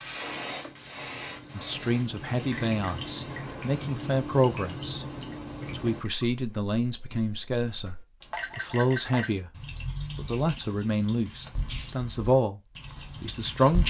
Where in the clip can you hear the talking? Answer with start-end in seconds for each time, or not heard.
1.5-5.0, 5.7-8.0, 8.6-9.5, 10.2-12.6, 13.2-13.8.